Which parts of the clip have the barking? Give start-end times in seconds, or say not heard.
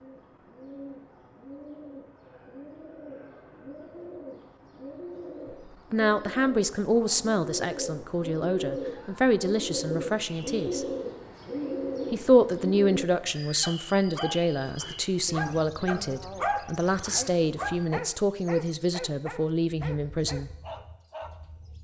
13.1-21.4.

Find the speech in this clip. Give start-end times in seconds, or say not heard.
5.9-10.8, 12.1-20.5.